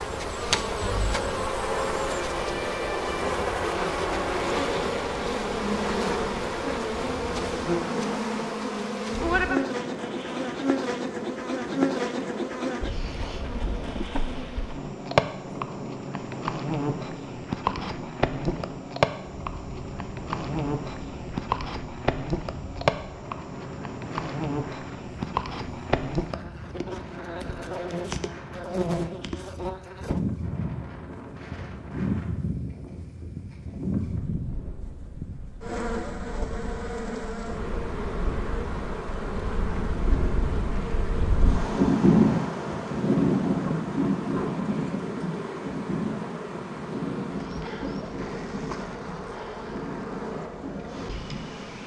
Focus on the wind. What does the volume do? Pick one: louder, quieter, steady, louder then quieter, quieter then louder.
louder.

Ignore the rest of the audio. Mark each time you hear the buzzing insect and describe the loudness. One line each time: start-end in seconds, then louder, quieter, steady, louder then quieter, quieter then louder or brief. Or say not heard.
0.0-51.8 quieter.